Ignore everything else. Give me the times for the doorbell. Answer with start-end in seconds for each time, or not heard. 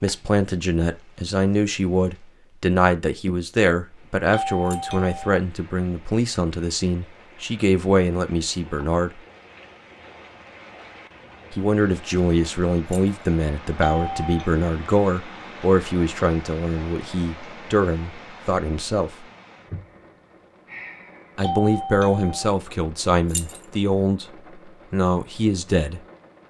4.3-5.4, 13.8-14.5, 21.4-22.5.